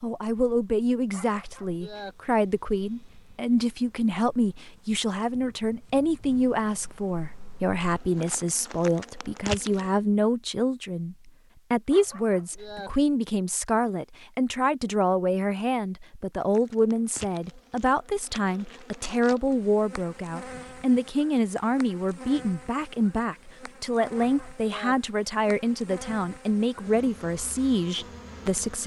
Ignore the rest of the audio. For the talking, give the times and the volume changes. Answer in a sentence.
The talking can be heard from 0.0 to 28.8 s, at a steady volume.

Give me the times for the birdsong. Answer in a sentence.
The birdsong can't be heard in this clip.